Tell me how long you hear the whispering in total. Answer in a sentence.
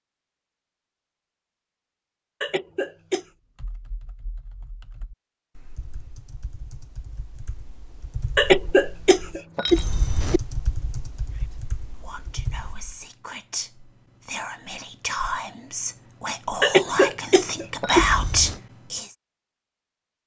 The whispering can be heard for 8 seconds in total.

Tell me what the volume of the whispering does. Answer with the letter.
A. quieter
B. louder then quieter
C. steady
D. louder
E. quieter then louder
D.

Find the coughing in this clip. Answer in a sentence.
The coughing can be heard from 2.4 to 3.2 s, from 8.3 to 10.4 s and from 16.6 to 18.6 s.